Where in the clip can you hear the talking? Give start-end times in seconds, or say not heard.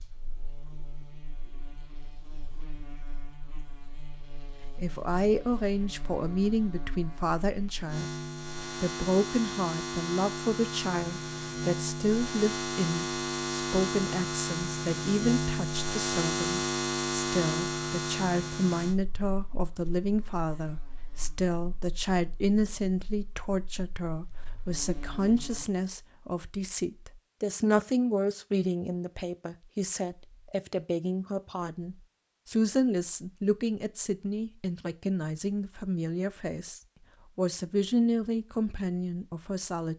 4.8-8.1, 8.8-39.9.